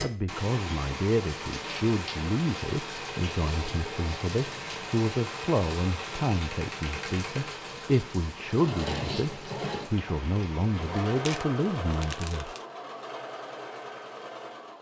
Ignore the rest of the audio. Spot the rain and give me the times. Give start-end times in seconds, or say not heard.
0.2-11.2.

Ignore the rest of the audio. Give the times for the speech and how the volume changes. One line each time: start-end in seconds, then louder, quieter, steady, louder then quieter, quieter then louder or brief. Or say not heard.
0.0-12.5 steady.